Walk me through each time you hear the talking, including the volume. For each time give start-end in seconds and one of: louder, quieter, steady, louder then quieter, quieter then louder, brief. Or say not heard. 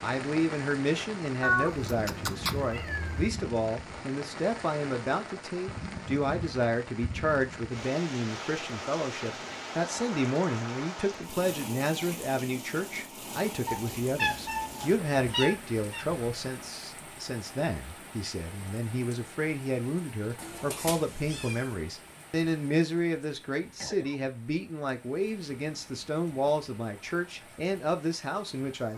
0.0-28.9 steady.